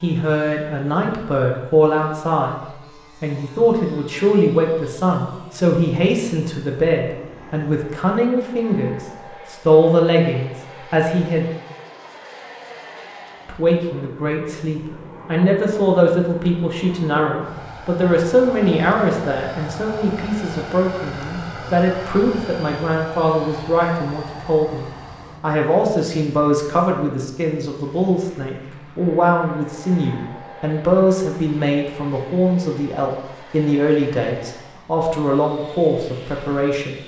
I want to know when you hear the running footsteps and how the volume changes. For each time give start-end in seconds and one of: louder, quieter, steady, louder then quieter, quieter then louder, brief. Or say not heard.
not heard.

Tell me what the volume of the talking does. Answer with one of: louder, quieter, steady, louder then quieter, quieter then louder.
steady.